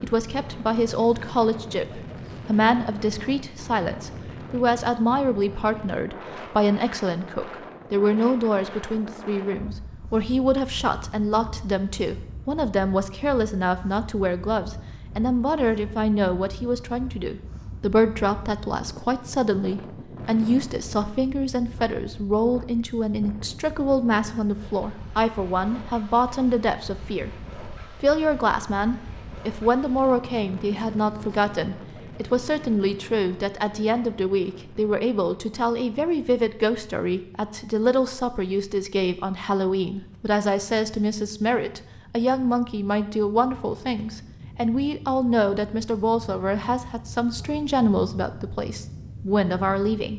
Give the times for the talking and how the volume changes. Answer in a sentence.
You can hear the talking from 0.0 to 50.1 s, at a steady volume.